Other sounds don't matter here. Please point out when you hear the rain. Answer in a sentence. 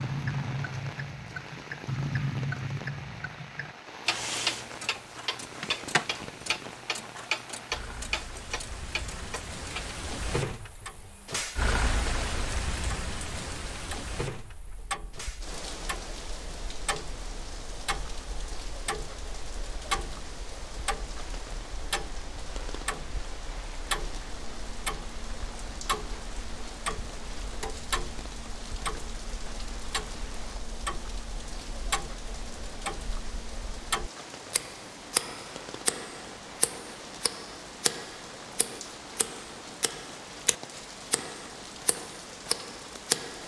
You can hear the rain from 0.0 to 43.4 s.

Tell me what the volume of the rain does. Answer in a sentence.
The volume of the rain goes up, then down.